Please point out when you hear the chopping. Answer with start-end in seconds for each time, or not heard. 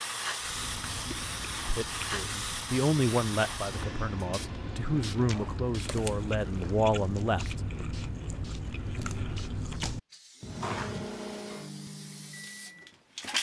not heard.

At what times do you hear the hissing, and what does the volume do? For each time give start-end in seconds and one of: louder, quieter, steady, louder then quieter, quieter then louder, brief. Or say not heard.
0.0-13.3 quieter.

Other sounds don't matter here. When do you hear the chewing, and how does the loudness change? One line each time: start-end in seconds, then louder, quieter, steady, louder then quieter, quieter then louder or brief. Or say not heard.
0.4-11.1 louder.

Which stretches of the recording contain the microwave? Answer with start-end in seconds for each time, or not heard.
10.4-13.1.